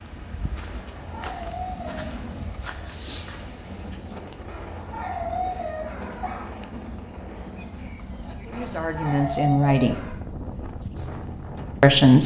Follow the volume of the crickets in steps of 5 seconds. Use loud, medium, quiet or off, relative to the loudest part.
loud, loud, medium.